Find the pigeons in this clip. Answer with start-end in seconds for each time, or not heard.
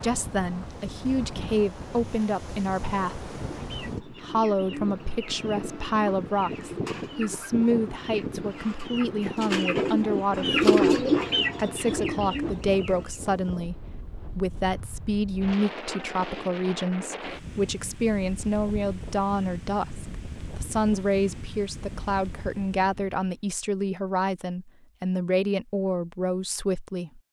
3.5-13.2.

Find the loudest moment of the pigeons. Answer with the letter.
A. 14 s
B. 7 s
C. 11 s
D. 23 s
C.